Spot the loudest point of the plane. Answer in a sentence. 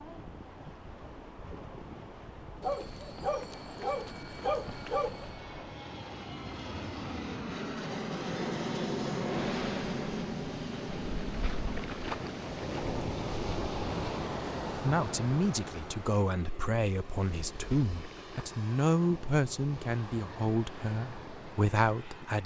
The loudest moment of the plane is at 9 seconds.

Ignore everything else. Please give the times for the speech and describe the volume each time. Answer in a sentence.
The speech can be heard from 14.8 to 22.4 s, at a steady volume.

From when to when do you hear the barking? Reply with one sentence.
You can hear the barking from 2.6 to 5.3 s.